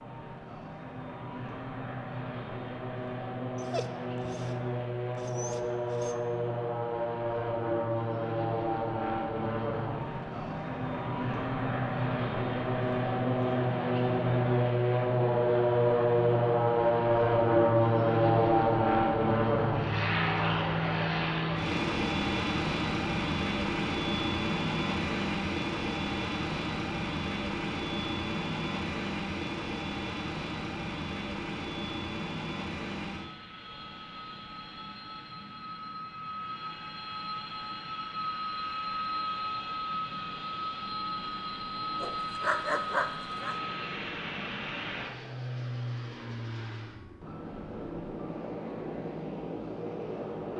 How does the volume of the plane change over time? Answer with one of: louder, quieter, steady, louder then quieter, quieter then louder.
louder then quieter.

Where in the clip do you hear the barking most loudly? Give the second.
43 s.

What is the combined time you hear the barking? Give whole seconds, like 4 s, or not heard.
4 s.